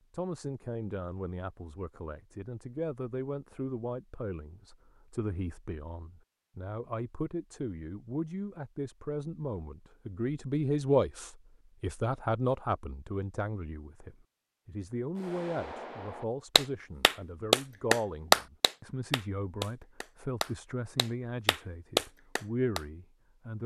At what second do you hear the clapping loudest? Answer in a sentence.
The loudest moment of the clapping is at 18 seconds.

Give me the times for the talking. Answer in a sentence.
The talking can be heard from 0.1 to 23.6 s.